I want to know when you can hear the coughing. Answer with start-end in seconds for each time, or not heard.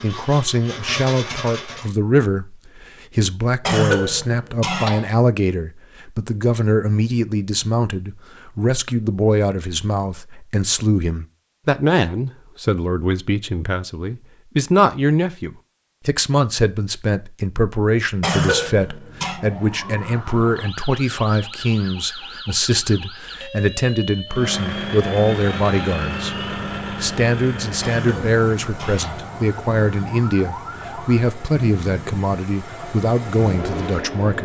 3.6-5.1, 18.2-19.4, 27.8-29.2.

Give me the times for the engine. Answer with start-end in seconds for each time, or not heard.
0.0-1.9, 24.2-34.4.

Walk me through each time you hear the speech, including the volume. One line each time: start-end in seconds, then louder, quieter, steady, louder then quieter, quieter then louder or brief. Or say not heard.
0.0-34.4 steady.